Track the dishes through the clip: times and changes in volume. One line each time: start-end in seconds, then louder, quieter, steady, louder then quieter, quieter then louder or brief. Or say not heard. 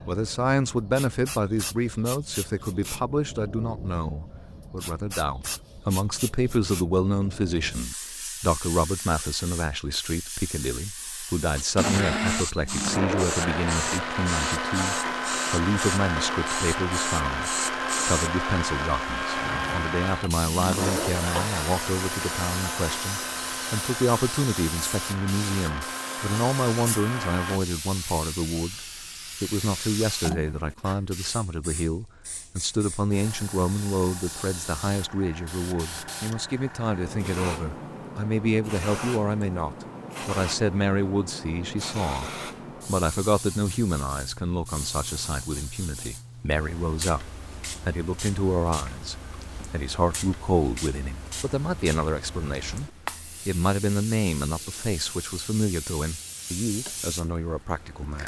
not heard.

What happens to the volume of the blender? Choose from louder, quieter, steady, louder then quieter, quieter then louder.
quieter.